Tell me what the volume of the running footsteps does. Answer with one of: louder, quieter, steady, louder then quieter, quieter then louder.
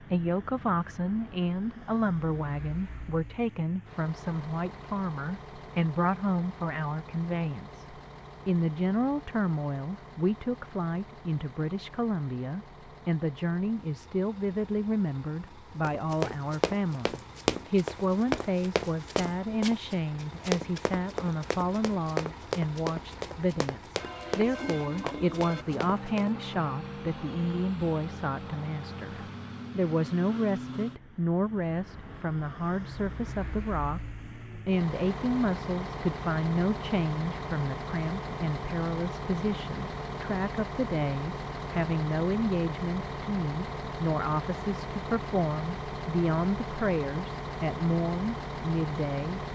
quieter.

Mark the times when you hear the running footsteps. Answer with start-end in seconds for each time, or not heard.
15.8-26.3.